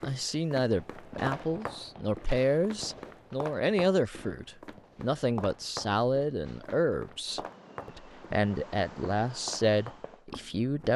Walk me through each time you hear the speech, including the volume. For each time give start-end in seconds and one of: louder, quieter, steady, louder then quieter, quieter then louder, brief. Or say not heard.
0.0-10.9 steady.